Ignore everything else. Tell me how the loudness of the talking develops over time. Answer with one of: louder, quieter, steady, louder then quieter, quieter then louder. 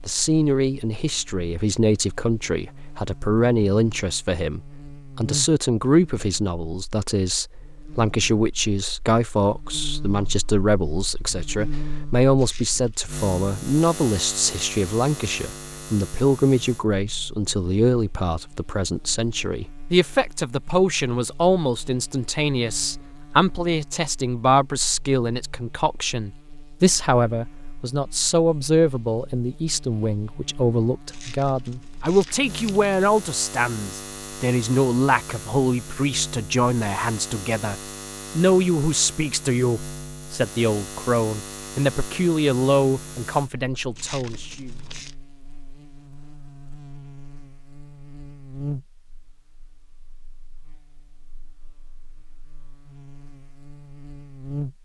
steady.